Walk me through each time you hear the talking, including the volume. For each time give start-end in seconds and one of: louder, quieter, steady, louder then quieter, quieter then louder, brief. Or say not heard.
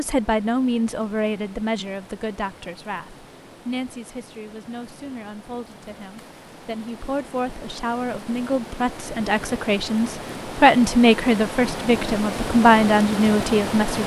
0.0-14.0 quieter then louder.